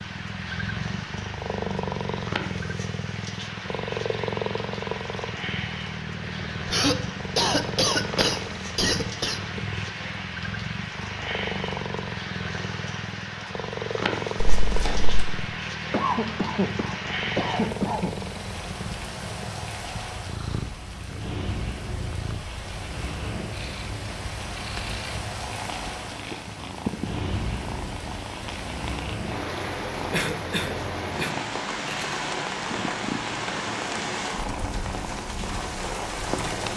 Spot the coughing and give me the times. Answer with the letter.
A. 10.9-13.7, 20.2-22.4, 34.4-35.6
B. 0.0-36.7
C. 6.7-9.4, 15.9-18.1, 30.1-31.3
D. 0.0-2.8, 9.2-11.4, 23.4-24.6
C.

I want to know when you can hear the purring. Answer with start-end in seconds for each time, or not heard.
0.0-36.7.